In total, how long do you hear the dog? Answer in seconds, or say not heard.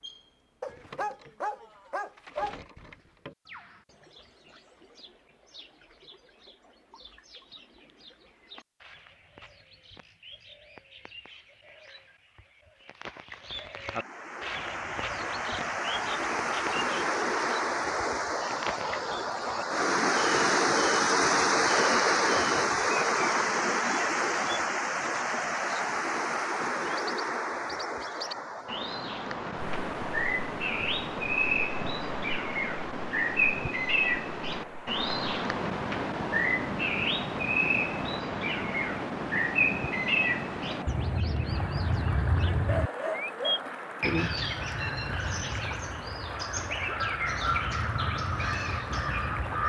3 s.